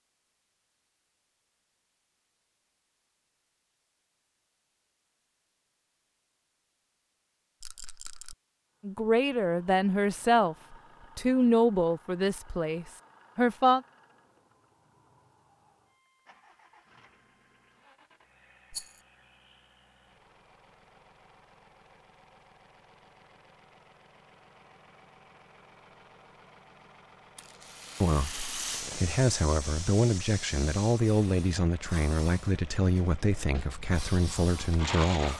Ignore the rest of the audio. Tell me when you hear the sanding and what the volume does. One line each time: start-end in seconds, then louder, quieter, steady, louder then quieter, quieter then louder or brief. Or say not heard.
not heard.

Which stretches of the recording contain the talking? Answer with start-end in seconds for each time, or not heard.
8.8-13.8, 28.0-35.3.